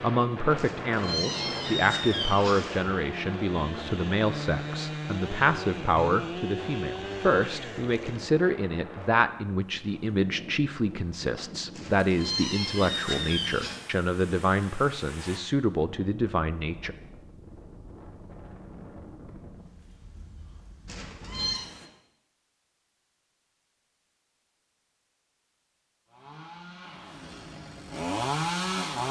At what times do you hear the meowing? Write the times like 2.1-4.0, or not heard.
0.6-3.0, 11.8-13.8, 20.9-21.6.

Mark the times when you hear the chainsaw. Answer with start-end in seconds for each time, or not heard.
0.0-8.3, 26.1-29.0.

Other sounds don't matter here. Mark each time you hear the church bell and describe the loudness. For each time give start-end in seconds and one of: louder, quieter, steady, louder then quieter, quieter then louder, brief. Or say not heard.
not heard.